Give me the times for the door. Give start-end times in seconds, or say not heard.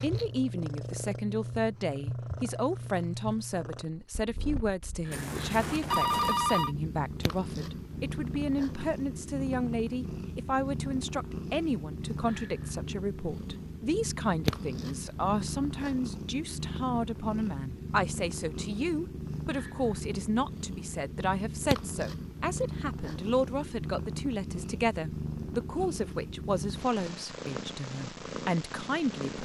not heard.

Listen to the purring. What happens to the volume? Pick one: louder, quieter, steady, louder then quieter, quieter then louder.
steady.